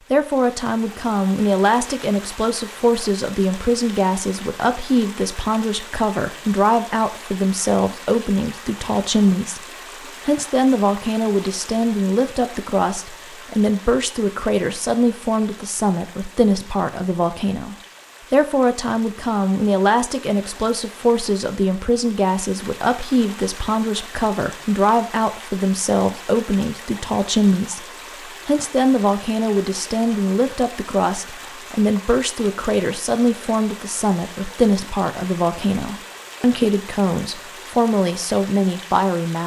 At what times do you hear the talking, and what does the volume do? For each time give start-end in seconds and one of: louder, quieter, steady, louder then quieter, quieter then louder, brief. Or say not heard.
0.1-27.9 steady
28.4-39.4 steady.